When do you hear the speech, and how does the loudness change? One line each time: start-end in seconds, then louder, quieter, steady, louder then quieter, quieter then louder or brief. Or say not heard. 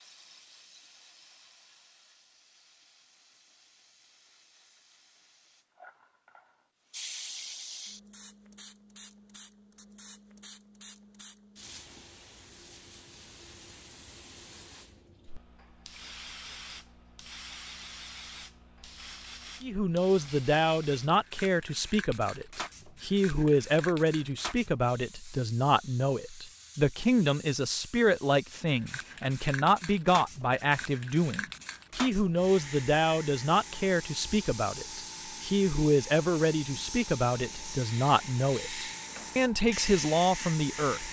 19.6-41.0 steady.